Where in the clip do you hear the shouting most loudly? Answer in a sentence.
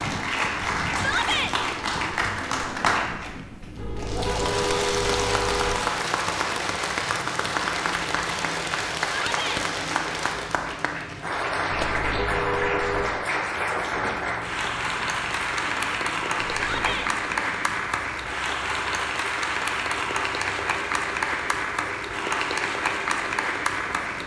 The loudest moment of the shouting is at 1 second.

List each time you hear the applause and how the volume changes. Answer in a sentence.
You can hear the applause from 0.0 to 24.2 s, at a steady volume.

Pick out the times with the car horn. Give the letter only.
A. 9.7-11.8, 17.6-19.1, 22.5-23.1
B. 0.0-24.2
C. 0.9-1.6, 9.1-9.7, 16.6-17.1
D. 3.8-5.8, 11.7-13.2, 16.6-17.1
D.